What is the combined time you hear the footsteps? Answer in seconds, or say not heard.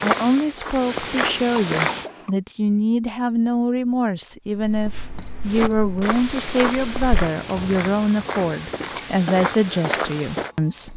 7 s.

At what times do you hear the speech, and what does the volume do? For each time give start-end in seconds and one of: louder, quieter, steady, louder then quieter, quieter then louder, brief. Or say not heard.
0.0-10.9 steady.